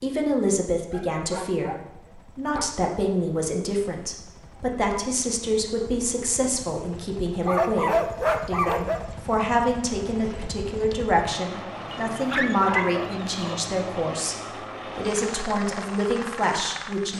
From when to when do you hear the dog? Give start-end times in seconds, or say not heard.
0.9-2.7, 7.5-9.1, 11.9-13.6.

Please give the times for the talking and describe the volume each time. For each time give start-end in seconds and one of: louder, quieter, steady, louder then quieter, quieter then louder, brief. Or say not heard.
0.0-17.1 steady.